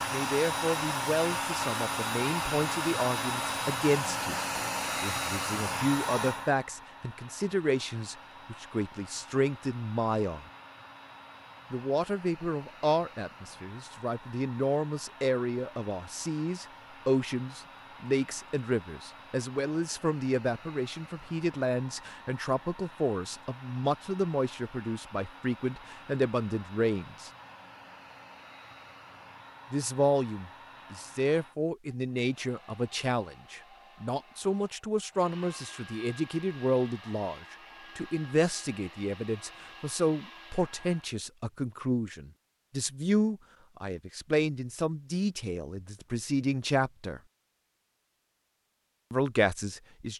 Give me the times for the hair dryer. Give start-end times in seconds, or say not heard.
0.0-41.1.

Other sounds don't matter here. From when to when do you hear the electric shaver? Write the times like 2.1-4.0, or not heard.
not heard.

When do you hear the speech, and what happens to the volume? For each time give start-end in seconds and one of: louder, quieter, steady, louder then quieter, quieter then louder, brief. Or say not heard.
0.0-10.4 steady
11.7-27.3 steady
29.7-47.2 steady
49.1-50.1 brief.